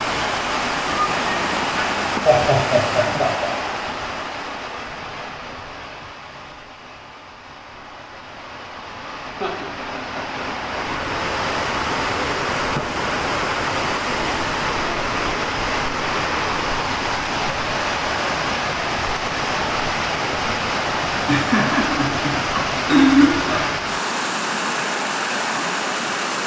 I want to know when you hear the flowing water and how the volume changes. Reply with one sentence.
The flowing water can be heard from 0.0 to 26.4 s, getting quieter then louder.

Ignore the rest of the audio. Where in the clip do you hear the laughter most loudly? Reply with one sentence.
The volume of the laughter peaks at 23 seconds.